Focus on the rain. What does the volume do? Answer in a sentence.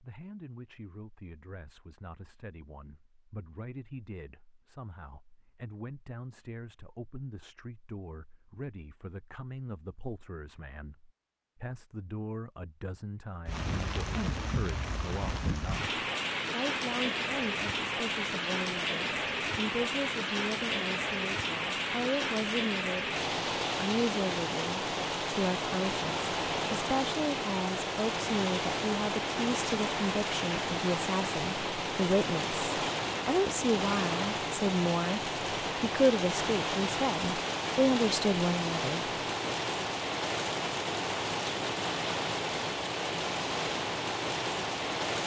The loudness of the rain stays about the same.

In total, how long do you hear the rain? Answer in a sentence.
The rain can be heard for 32 seconds in total.